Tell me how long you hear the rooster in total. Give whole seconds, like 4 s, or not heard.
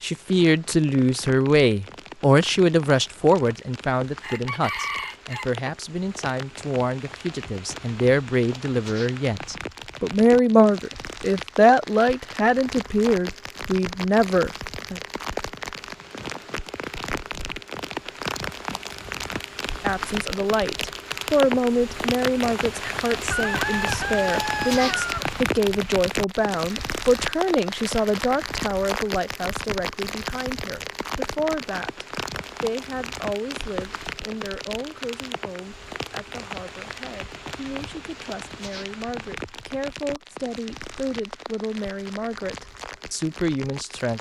3 s.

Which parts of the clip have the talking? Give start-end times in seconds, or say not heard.
0.0-15.0, 19.8-44.1.